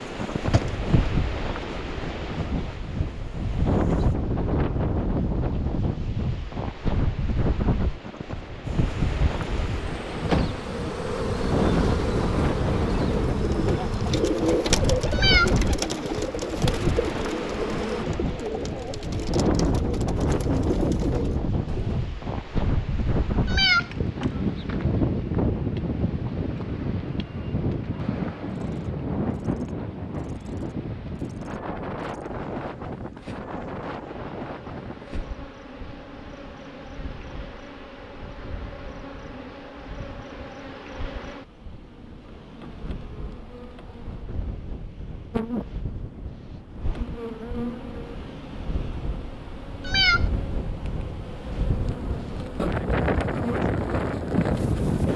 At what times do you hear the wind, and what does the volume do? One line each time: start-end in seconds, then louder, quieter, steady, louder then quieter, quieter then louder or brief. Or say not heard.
0.0-55.1 quieter then louder.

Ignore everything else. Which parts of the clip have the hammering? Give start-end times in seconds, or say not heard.
not heard.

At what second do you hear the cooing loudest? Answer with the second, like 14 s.
15 s.